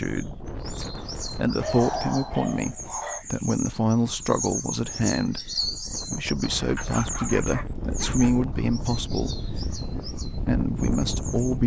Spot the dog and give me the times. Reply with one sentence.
The dog can be heard from 1.6 to 3.2 s and from 6.8 to 8.3 s.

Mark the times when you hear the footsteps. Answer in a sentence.
The footsteps can't be heard in this clip.